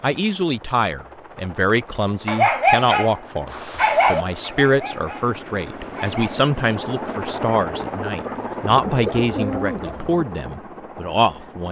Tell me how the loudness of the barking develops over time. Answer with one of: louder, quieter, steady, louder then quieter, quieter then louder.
quieter.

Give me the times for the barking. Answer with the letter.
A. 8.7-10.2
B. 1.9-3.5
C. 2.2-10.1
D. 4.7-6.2
C.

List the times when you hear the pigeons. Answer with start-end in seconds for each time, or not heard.
8.7-10.2.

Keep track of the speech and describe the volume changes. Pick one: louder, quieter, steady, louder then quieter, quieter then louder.
steady.